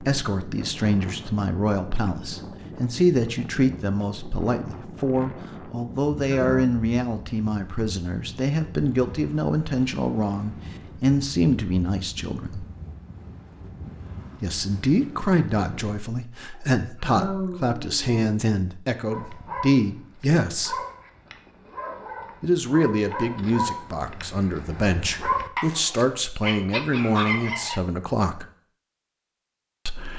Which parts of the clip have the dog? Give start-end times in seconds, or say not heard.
19.1-27.8.